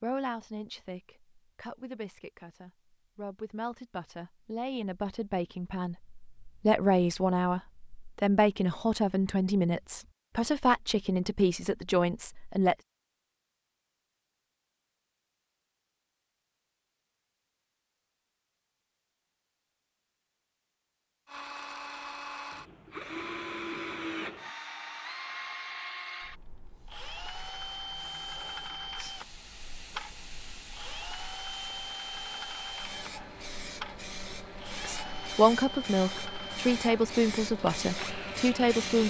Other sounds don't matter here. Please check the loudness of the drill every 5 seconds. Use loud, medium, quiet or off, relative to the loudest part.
off, off, off, off, loud, loud, loud, loud.